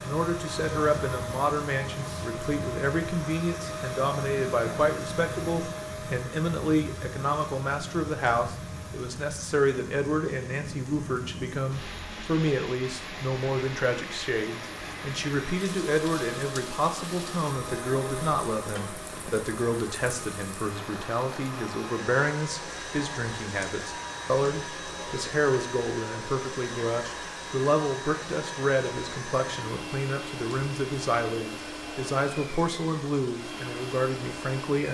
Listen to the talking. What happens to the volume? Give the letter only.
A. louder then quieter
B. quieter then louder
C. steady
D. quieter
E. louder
C.